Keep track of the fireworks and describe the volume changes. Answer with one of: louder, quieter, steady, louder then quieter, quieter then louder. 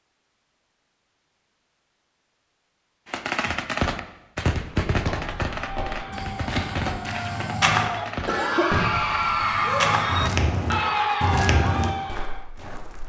quieter then louder.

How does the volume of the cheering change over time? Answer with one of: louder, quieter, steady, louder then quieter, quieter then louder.
louder.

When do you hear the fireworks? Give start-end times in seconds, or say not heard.
3.0-9.7.